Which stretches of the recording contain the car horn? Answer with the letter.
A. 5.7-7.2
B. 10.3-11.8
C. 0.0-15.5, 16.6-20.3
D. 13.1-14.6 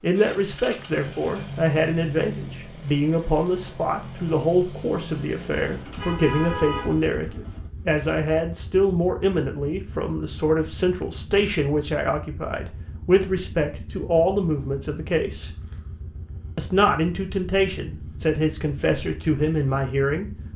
A.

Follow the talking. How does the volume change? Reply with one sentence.
The volume of the talking stays about the same.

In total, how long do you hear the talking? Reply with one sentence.
The talking can be heard for 19 seconds in total.